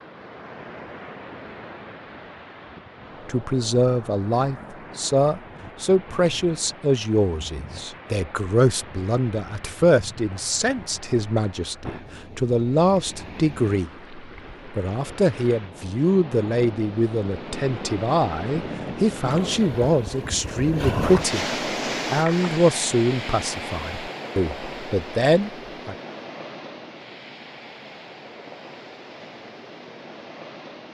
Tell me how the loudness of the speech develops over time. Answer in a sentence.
The volume of the speech stays about the same.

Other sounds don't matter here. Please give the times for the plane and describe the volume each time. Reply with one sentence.
You can't hear the plane here.